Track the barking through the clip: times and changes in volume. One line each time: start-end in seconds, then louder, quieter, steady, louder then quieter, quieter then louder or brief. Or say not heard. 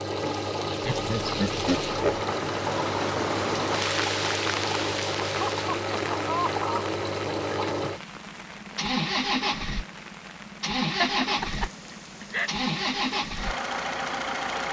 not heard.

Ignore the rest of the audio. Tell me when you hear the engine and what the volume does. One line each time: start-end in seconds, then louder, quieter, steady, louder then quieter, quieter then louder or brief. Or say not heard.
0.0-14.6 steady.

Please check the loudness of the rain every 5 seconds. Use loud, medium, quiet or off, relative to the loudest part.
loud, medium, quiet.